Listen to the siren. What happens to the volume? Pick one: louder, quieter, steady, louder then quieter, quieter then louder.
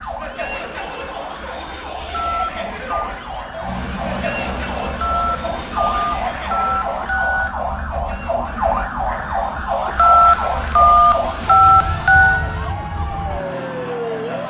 louder then quieter.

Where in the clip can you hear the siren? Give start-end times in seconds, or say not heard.
0.0-14.4.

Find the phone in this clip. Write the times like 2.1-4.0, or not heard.
2.1-3.1, 5.0-7.5, 9.9-12.4.